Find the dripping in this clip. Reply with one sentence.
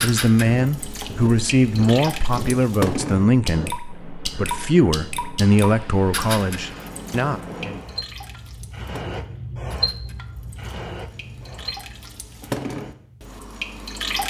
The dripping can be heard from 0.0 to 14.2 s.